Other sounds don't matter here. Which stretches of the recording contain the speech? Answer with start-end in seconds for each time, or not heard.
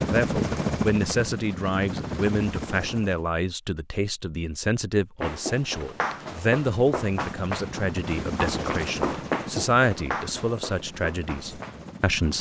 0.0-12.3.